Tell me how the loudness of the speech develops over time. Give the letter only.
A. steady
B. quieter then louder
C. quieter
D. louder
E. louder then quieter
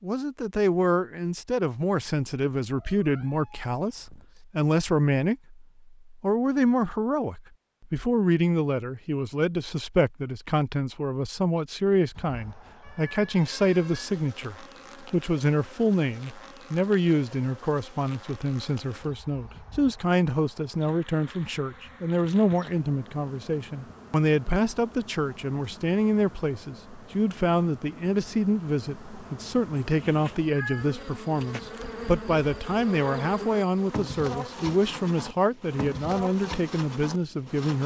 A.